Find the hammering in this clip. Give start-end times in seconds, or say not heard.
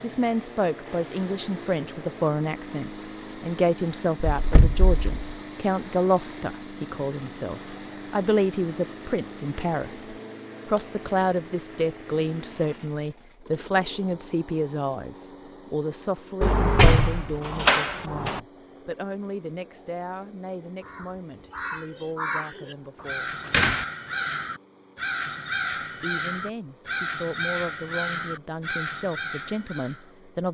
not heard.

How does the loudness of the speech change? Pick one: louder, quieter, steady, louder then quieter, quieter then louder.
quieter.